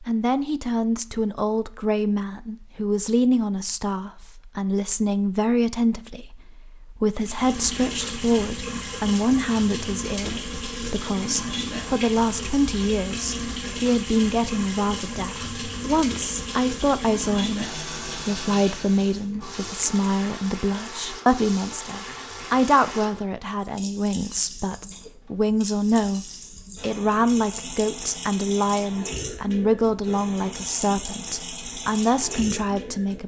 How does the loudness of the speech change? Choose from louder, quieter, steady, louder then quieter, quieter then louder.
steady.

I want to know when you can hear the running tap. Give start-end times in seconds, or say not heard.
7.2-33.2.